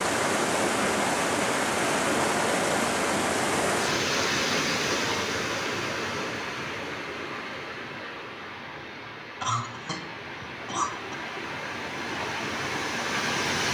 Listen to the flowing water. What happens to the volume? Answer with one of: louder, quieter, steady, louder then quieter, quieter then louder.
quieter then louder.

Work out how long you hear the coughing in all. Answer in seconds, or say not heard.
2 s.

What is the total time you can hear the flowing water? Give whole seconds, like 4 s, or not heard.
14 s.